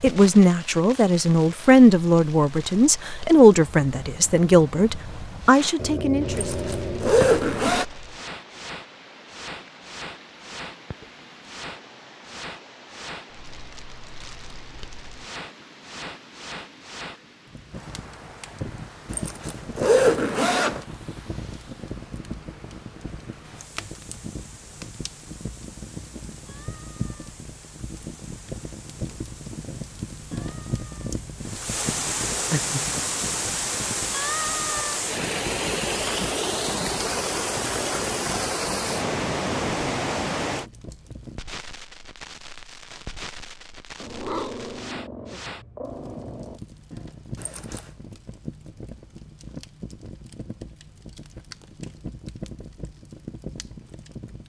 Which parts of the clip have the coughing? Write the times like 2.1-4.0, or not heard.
not heard.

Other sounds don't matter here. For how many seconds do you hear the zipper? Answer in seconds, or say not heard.
4 s.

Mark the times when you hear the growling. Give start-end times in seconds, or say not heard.
5.8-7.7, 32.5-33.5, 44.0-46.6.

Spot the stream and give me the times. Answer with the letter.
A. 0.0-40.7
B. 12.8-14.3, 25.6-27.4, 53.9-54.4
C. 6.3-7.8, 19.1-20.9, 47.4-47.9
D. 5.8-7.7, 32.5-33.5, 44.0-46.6
A.